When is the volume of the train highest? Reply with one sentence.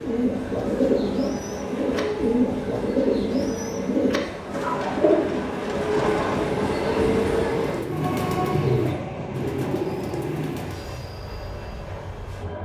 The volume of the train peaks at 7 seconds.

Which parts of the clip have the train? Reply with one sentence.
The train can be heard from 0.0 to 12.6 s.